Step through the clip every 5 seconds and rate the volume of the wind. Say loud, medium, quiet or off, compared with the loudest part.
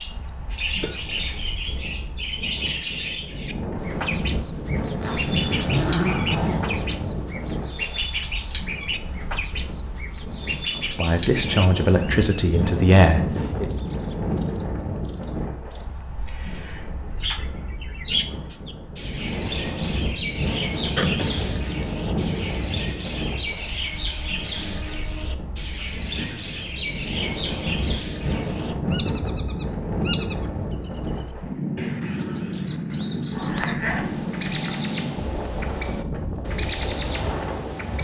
medium, loud, loud, medium, loud, loud, loud, loud.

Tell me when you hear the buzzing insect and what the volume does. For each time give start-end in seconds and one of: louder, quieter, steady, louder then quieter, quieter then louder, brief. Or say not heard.
not heard.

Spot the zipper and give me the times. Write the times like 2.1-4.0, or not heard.
5.0-6.8, 33.3-34.8.